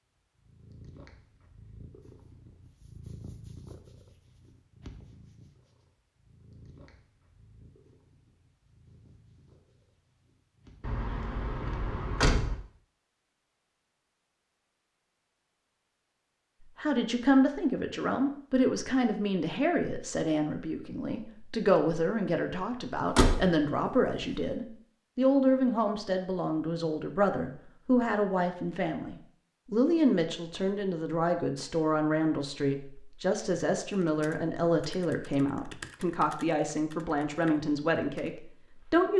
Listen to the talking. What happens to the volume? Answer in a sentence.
The loudness of the talking stays about the same.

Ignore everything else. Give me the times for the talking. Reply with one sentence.
The talking can be heard from 16.8 to 39.1 s.